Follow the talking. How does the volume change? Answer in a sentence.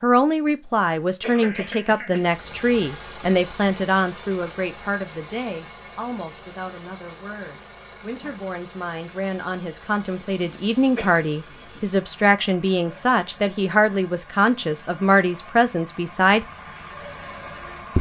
The volume of the talking goes down, then up.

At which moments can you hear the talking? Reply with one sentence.
You can hear the talking from 0.0 to 16.4 s.